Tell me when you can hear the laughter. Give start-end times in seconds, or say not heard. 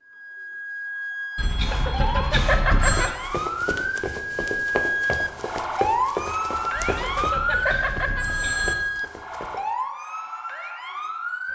1.7-3.1, 6.9-8.2.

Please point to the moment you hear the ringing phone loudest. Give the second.
3 s.